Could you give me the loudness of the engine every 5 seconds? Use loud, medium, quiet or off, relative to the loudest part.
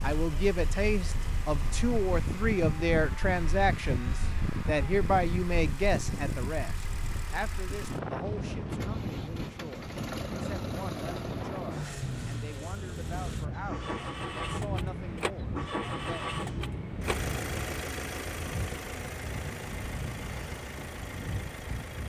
medium, medium, loud, loud, medium.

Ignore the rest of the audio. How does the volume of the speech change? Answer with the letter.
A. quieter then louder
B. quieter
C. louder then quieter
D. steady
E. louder
B.